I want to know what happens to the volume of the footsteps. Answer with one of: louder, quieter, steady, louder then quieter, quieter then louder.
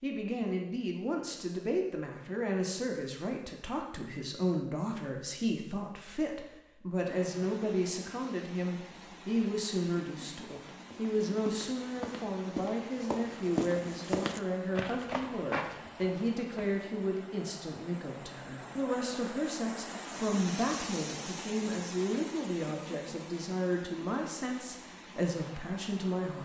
louder.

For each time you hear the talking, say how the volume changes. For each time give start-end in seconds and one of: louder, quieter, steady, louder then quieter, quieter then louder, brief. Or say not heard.
0.0-26.4 steady.